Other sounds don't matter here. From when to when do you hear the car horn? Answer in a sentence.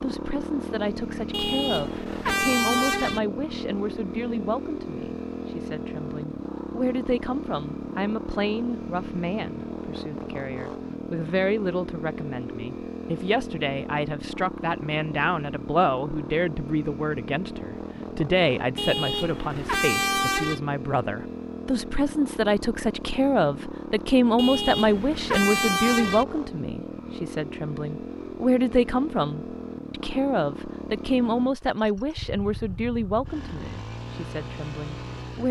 You can hear the car horn from 1.3 to 3.2 s, from 18.8 to 20.6 s and from 24.4 to 26.2 s.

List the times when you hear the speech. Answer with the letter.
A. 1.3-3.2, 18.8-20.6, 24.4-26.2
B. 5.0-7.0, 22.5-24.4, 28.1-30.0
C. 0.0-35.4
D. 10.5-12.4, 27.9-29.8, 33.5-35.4
C.